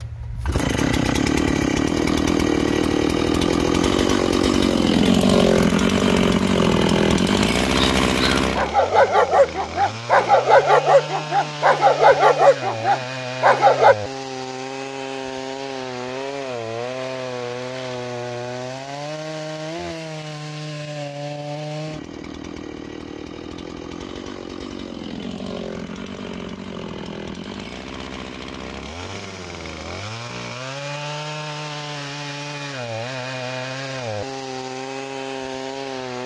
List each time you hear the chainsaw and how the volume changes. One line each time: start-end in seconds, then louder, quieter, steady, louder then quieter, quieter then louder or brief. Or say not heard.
0.0-36.2 quieter.